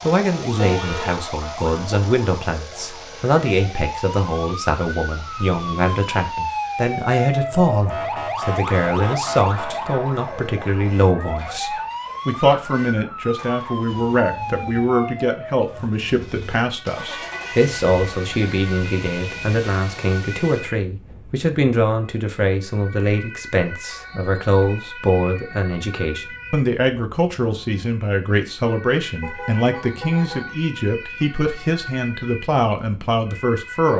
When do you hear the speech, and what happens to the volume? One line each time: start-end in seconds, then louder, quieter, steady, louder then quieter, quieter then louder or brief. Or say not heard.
0.0-33.9 steady.